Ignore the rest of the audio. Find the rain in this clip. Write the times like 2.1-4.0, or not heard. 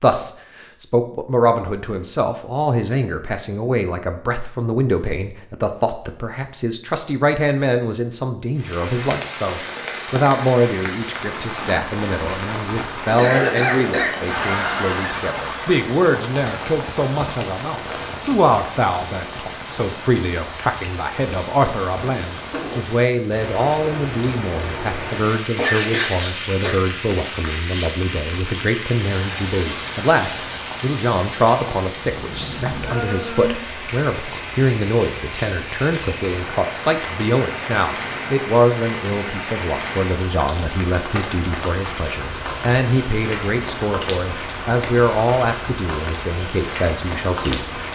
8.6-47.9.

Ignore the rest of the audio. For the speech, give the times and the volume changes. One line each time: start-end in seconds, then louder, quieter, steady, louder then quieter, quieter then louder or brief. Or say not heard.
0.0-47.6 steady.